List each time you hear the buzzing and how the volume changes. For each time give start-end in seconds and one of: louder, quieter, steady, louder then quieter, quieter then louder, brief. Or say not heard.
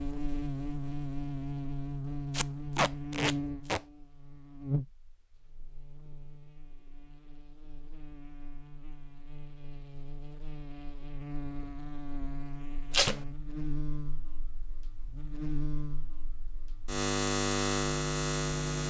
0.0-18.8 quieter then louder.